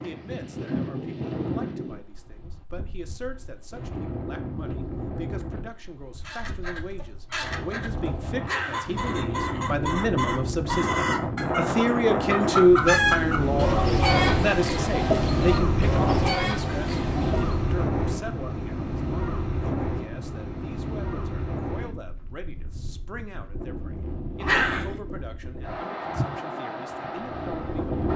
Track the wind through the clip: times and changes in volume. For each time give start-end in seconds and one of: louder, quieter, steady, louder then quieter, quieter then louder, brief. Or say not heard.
0.0-28.1 louder then quieter.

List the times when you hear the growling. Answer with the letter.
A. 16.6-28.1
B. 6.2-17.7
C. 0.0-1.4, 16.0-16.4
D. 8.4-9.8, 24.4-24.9
D.